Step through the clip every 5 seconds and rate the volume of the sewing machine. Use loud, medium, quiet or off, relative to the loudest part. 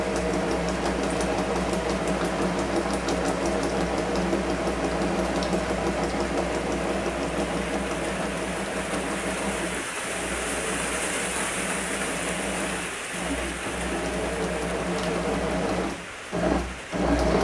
loud, loud, medium, loud.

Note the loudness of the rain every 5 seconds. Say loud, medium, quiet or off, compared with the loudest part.
medium, loud, loud, medium.